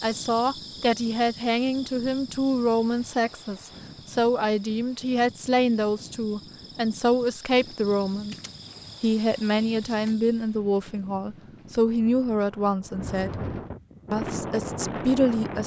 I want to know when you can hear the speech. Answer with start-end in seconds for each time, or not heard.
0.0-8.3, 9.0-13.3, 14.1-15.6.